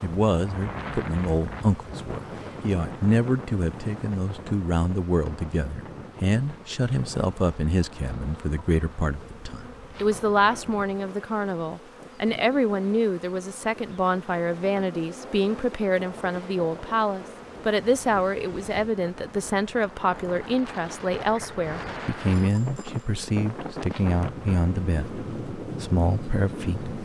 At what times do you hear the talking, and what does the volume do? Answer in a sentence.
You can hear the talking from 0.0 to 26.9 s, at a steady volume.